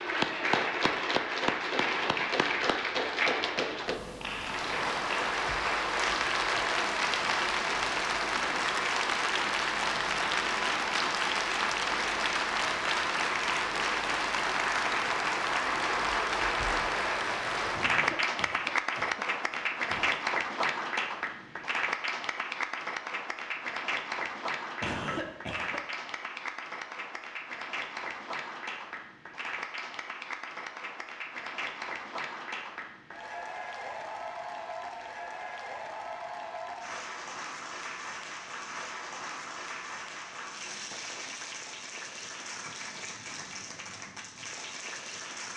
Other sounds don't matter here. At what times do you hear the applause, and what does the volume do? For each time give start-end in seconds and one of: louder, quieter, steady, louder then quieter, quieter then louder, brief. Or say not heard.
0.0-45.5 quieter.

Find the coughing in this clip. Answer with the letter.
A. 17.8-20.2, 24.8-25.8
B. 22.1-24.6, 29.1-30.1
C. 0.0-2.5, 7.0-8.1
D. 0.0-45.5
A.